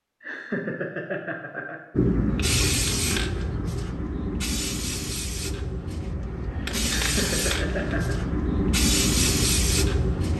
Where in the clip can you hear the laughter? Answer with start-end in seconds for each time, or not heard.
0.2-1.8, 7.0-8.2.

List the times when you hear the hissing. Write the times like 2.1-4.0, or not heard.
1.9-10.3.